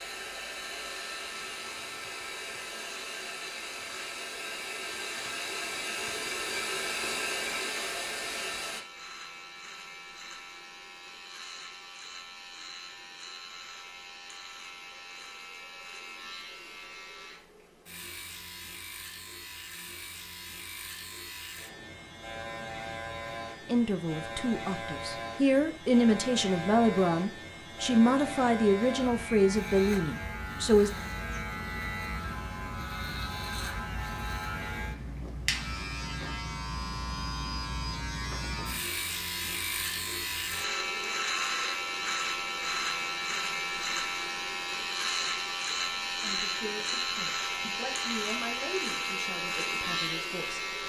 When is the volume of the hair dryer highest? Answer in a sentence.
The loudest moment of the hair dryer is at 7 seconds.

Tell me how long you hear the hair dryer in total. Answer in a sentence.
The hair dryer can be heard for 9 seconds in total.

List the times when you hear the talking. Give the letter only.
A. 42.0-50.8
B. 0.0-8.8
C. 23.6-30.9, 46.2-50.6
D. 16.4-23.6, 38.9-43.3
C.